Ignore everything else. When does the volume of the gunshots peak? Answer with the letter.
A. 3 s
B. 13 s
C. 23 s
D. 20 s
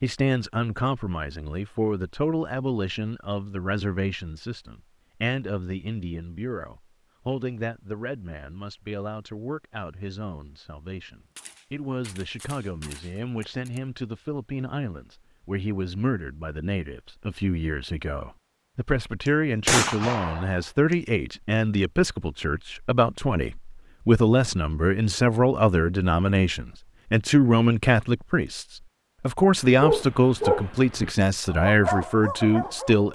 D.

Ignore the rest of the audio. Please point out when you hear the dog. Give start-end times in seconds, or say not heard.
29.7-33.1.